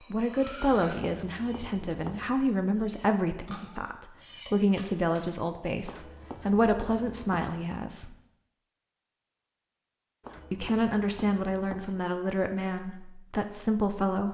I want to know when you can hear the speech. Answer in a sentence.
The speech can be heard from 0.1 to 8.2 s and from 10.5 to 14.3 s.